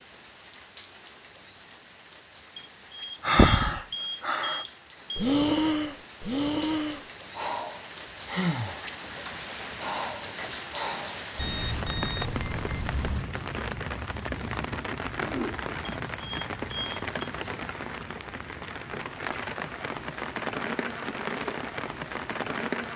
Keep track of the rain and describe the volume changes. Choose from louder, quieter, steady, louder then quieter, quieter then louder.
louder.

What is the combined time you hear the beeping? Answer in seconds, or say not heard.
6 s.